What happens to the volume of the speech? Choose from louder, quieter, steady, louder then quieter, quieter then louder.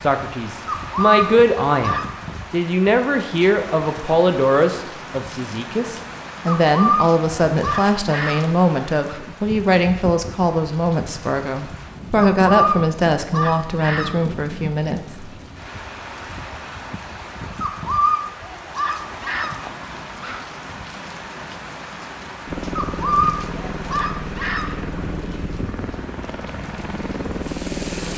steady.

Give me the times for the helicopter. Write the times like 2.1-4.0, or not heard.
22.4-28.1.